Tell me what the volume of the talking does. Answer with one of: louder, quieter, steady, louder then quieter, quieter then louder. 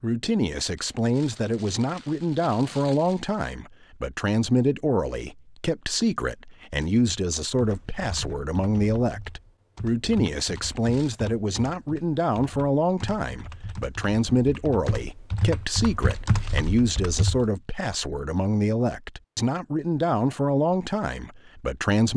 steady.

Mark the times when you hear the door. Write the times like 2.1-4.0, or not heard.
not heard.